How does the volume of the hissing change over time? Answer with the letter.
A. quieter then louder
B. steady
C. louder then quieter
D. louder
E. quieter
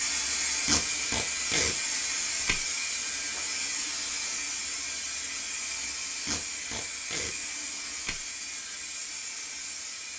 E.